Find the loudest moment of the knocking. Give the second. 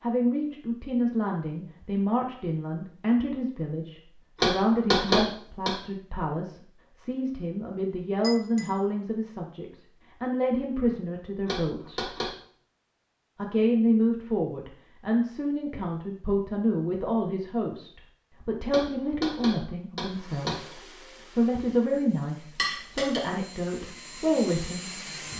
5 s.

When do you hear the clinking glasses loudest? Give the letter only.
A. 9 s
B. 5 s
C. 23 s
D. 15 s
C.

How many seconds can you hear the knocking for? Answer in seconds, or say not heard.
4 s.